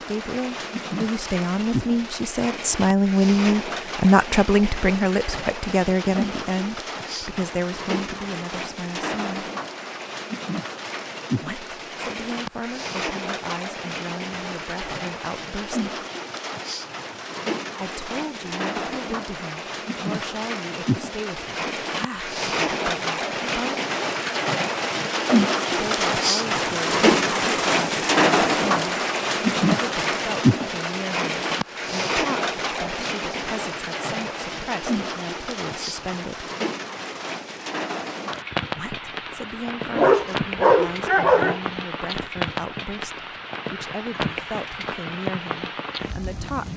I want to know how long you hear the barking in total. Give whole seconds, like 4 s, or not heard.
2 s.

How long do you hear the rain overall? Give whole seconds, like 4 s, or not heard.
47 s.